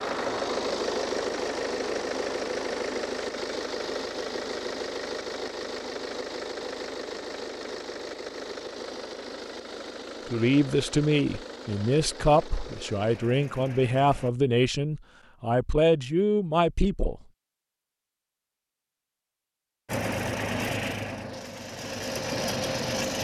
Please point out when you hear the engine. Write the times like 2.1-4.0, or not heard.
0.0-14.3, 19.9-23.1.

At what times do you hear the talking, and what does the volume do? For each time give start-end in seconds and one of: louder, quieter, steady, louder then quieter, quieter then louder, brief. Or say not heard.
10.2-17.2 steady.